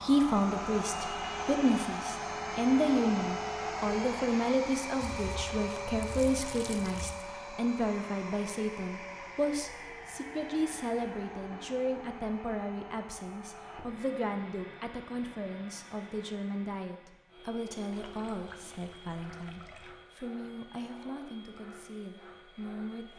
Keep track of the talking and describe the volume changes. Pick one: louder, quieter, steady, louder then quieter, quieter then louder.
quieter.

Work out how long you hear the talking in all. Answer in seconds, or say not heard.
23 s.